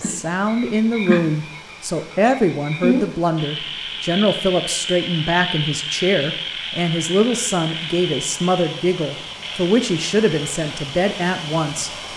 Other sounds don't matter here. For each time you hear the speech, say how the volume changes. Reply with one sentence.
You can hear the speech from 0.0 to 11.9 s, at a steady volume.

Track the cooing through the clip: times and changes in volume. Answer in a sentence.
The cooing can't be heard in this clip.